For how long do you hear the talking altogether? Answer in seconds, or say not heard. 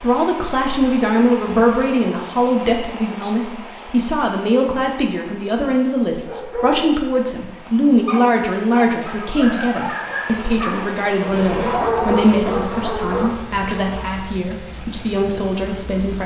16 s.